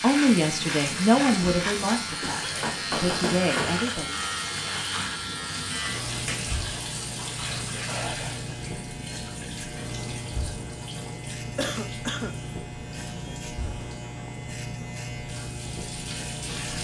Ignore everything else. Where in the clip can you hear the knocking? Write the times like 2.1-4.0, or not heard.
2.4-3.9.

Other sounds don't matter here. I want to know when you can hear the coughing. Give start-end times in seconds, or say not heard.
1.3-2.5, 7.8-8.3, 11.6-12.3.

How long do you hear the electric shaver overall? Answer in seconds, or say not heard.
17 s.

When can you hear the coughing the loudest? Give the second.
12 s.